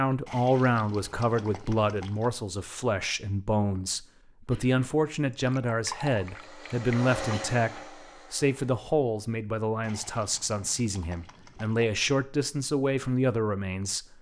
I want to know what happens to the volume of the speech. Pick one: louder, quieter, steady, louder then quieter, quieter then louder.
steady.